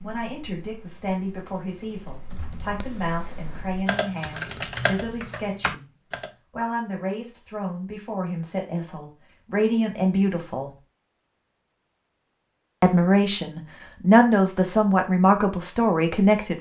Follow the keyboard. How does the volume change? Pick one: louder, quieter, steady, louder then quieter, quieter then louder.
louder.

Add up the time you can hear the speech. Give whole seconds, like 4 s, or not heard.
14 s.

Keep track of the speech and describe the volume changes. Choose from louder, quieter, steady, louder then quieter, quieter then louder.
louder.